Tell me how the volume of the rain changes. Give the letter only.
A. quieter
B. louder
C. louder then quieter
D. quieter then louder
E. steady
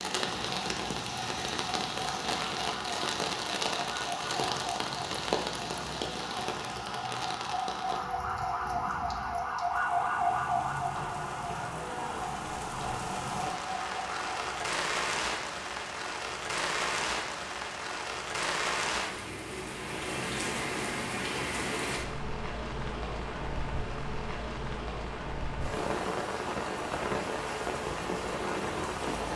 D.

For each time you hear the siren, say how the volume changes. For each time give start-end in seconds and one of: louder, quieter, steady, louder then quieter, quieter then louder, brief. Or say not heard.
0.0-14.7 louder then quieter.